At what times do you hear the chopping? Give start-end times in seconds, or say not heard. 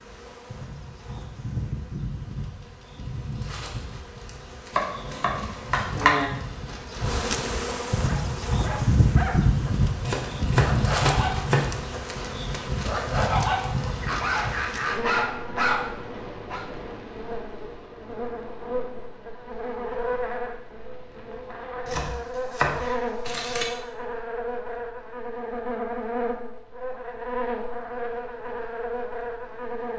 4.8-6.3, 10.1-11.9, 21.9-23.6.